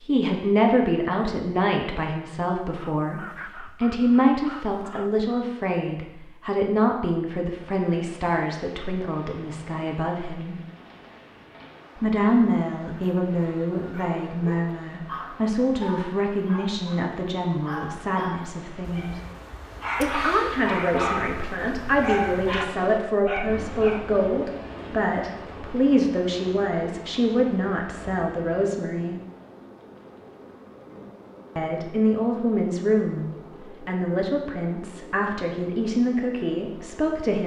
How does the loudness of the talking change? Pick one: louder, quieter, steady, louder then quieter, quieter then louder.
steady.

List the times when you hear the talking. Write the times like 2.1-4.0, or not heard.
0.0-10.6, 12.0-19.2, 20.0-29.2, 31.6-37.4.